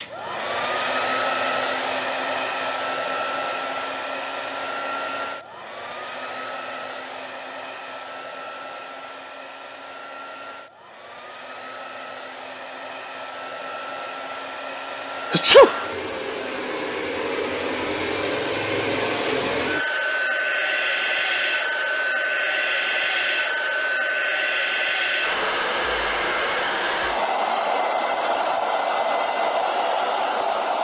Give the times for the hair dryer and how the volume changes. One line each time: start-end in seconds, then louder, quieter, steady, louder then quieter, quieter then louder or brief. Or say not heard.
0.0-30.7 quieter then louder.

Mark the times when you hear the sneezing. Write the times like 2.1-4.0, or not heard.
15.3-15.8.